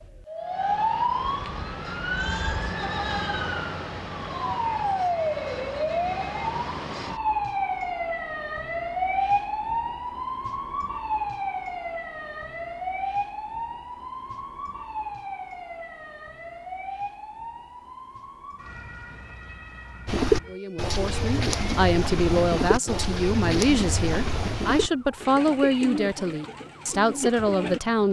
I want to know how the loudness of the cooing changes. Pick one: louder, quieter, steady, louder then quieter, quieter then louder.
quieter.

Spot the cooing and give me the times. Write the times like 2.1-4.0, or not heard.
20.1-27.8.